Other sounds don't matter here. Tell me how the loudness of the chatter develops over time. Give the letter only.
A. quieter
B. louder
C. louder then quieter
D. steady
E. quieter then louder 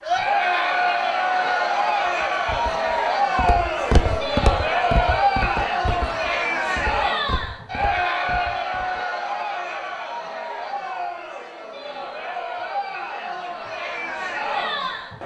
A.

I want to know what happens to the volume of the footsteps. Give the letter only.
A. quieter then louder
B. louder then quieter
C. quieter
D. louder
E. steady
B.